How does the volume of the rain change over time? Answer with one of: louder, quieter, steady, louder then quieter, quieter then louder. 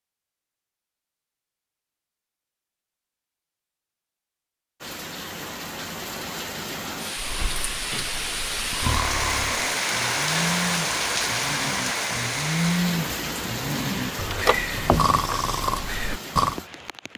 louder then quieter.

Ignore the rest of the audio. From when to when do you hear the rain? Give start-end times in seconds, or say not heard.
4.8-17.1.